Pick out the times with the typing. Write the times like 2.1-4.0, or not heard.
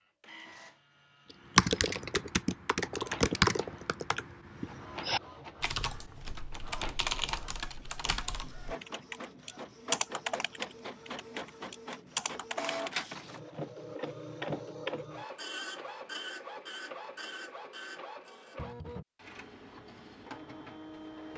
1.6-13.0.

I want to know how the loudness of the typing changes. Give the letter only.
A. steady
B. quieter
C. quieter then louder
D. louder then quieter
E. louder
B.